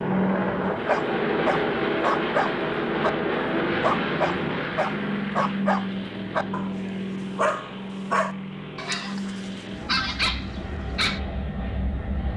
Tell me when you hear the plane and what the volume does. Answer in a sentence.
You can hear the plane from 0.0 to 12.3 s, getting quieter.